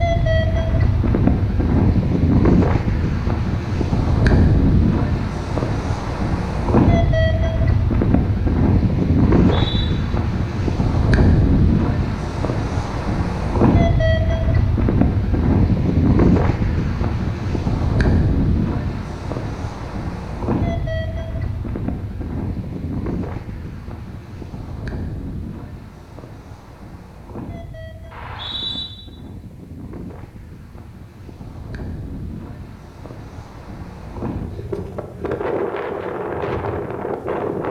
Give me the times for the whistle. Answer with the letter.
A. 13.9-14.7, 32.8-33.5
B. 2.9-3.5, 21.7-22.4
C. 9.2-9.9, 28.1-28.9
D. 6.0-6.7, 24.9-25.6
C.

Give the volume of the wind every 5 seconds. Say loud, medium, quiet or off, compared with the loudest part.
loud, loud, loud, loud, medium, quiet, quiet, medium.